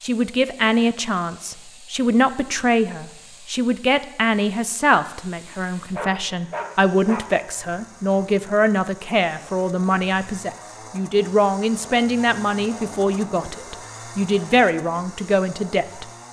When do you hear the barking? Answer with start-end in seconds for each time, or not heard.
5.5-7.3.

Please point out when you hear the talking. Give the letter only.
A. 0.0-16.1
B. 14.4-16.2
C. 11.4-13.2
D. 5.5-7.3
A.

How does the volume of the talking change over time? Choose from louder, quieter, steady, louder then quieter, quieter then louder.
steady.